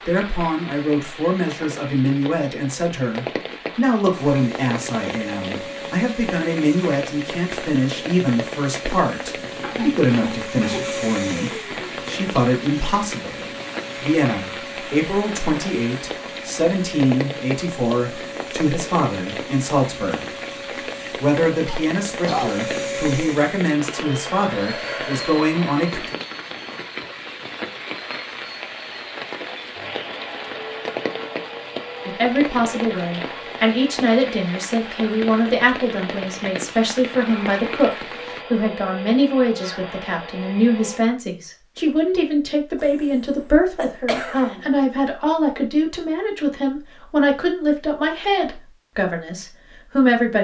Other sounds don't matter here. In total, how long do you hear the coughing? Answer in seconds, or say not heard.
4 s.